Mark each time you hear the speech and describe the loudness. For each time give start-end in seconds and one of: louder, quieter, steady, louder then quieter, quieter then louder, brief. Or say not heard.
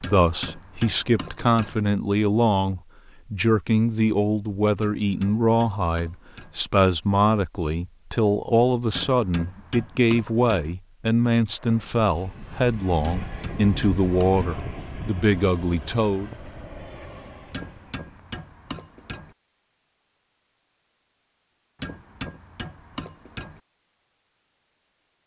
0.0-16.4 steady.